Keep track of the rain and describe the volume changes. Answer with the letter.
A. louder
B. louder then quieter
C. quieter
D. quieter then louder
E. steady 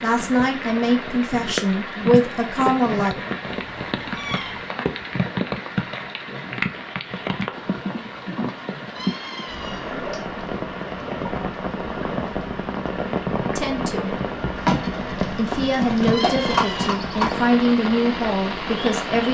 E.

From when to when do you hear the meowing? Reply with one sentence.
You can hear the meowing from 3.5 to 4.7 s, from 8.9 to 10.2 s and from 16.1 to 17.0 s.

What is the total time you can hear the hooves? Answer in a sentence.
You can hear the hooves for 3 seconds altogether.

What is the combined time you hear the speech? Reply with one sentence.
The speech can be heard for 8 seconds in total.